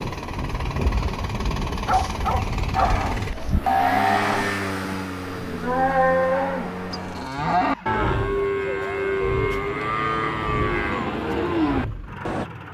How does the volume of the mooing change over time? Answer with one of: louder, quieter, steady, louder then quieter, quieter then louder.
steady.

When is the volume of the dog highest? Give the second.
2 s.